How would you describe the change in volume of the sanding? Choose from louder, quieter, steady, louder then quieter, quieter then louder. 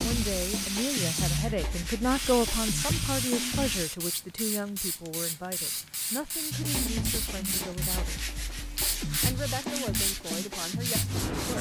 steady.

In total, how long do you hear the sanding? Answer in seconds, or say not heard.
9 s.